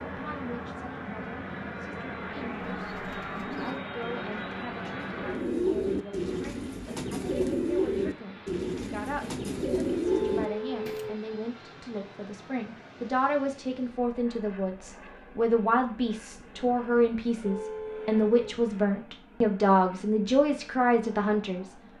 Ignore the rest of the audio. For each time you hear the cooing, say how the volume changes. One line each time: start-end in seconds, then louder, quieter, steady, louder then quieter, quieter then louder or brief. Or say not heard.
2.5-11.1 louder.